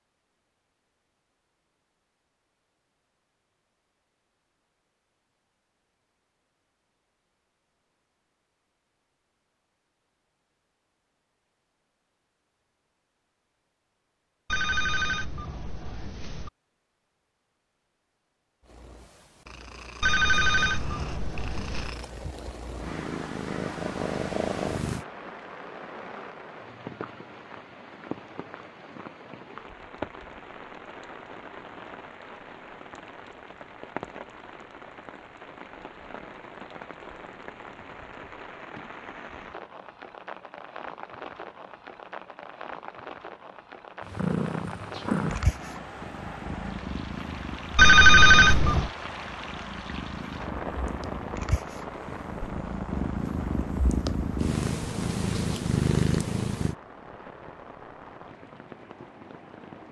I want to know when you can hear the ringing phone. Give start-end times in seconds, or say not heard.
14.5-16.5, 20.0-21.9, 47.8-48.9.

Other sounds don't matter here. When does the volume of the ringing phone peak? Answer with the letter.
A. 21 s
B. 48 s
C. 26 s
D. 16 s
B.